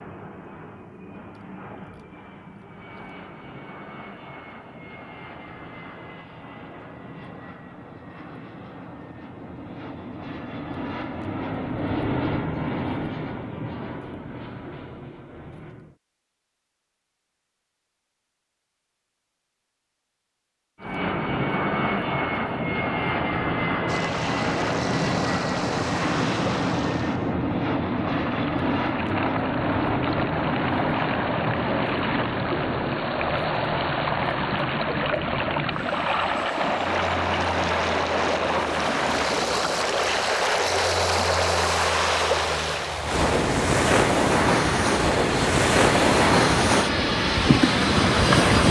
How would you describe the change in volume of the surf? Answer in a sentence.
The loudness of the surf goes up.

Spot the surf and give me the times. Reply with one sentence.
The surf can be heard from 23.9 to 48.6 s.